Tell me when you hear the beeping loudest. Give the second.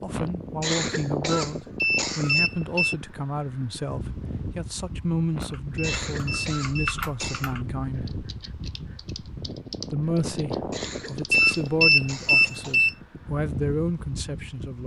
12 s.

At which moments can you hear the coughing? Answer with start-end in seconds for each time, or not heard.
0.1-2.4, 5.3-7.5, 10.2-12.8.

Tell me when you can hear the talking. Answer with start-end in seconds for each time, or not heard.
0.0-8.2, 9.9-14.8.